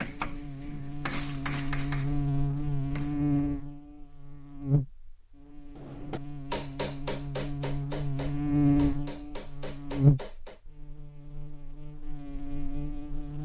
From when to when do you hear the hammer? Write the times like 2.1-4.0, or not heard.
0.0-3.2, 5.8-10.6.